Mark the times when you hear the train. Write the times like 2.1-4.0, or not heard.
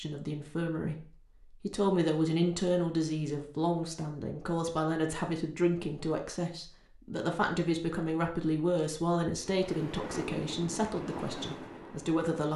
9.4-12.2.